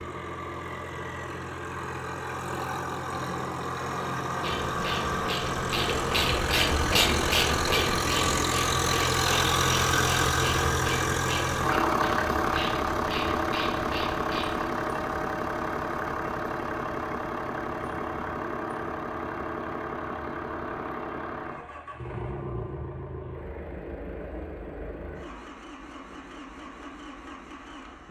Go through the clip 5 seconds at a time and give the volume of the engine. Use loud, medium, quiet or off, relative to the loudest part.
medium, loud, loud, medium, medium, quiet.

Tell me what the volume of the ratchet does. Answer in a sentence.
The loudness of the ratchet goes up, then down.